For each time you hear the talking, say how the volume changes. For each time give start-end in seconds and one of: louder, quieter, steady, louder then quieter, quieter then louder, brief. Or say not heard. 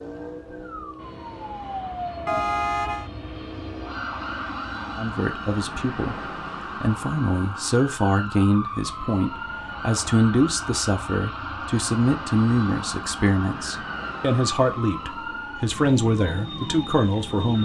5.0-6.2 brief
6.8-17.6 steady.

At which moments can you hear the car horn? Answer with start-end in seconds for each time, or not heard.
2.2-3.1.